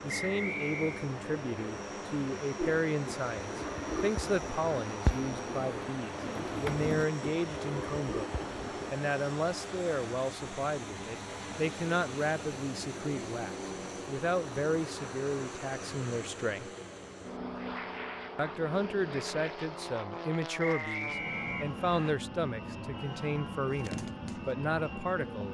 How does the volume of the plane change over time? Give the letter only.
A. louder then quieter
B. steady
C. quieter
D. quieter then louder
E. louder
B.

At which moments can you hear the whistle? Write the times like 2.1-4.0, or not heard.
0.1-1.1, 20.6-22.1.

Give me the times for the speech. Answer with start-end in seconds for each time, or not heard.
0.0-16.7, 18.4-25.4.